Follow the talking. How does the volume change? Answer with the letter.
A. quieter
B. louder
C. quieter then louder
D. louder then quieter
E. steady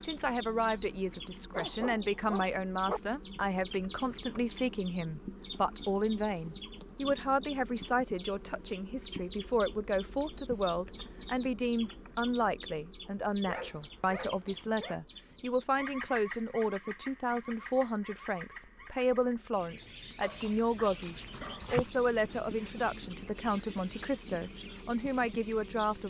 E.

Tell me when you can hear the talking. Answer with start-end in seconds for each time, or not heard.
0.0-26.0.